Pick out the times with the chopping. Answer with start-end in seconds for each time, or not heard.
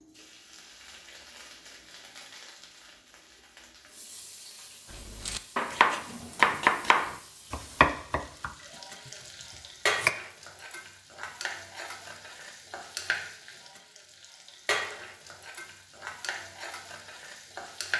5.0-10.1.